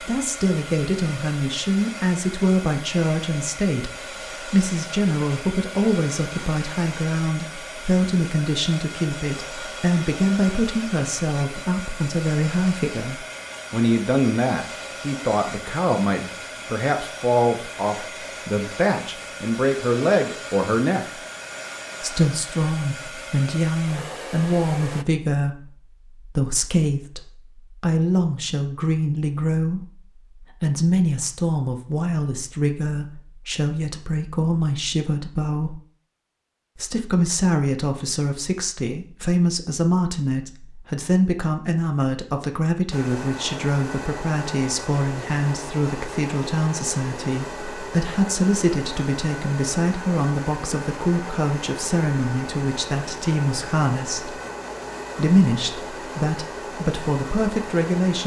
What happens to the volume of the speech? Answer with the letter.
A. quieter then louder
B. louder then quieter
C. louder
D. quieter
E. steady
E.